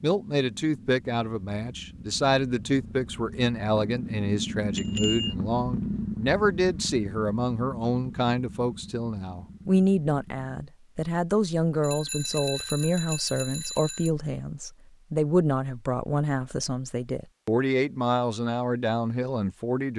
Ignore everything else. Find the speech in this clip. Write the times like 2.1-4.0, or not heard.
0.0-19.9.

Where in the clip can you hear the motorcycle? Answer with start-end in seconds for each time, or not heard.
0.0-10.5.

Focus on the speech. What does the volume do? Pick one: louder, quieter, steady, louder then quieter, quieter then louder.
steady.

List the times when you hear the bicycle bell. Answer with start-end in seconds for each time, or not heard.
4.8-5.3, 11.8-14.1.